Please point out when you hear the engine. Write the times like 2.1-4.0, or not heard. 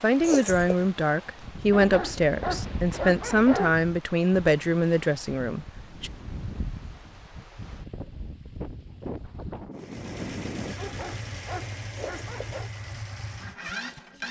9.8-14.2.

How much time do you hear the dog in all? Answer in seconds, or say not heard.
4 s.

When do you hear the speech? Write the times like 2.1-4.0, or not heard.
0.0-6.1.